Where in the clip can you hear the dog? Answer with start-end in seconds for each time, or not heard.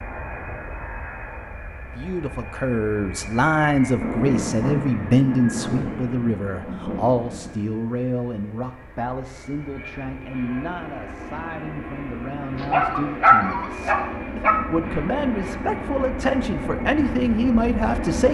12.6-14.6.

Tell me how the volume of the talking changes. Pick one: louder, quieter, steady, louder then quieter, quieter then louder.
quieter then louder.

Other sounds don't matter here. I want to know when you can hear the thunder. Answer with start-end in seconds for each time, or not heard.
4.0-7.5.